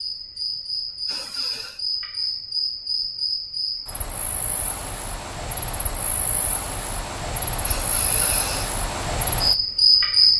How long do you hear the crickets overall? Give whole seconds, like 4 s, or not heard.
10 s.